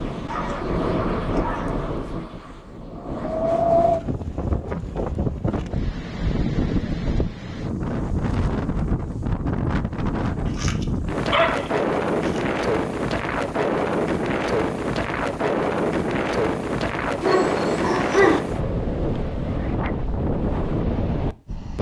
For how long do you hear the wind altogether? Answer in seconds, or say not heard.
22 s.